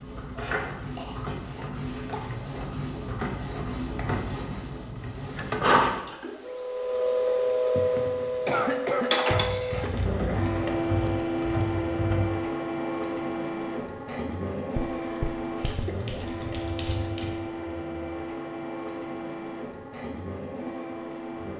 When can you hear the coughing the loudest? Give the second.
9 s.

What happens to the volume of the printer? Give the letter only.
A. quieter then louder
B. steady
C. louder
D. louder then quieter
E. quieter
D.